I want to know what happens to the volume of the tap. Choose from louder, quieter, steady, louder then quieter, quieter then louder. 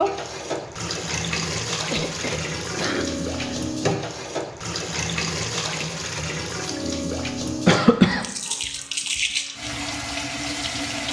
steady.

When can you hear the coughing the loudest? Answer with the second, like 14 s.
8 s.